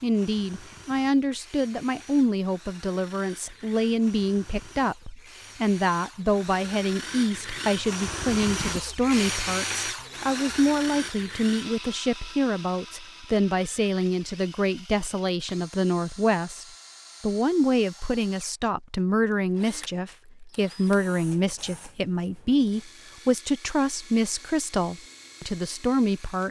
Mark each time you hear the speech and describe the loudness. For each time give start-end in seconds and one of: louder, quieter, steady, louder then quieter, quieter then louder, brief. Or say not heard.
0.0-26.4 steady.